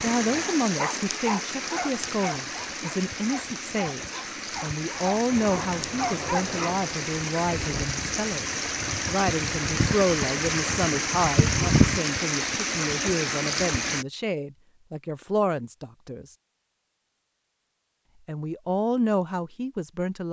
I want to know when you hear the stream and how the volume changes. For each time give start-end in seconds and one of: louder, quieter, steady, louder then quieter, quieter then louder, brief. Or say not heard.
0.0-14.1 louder.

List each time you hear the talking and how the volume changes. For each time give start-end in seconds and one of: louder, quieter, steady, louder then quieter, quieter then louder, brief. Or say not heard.
0.0-16.2 steady
18.2-20.2 brief.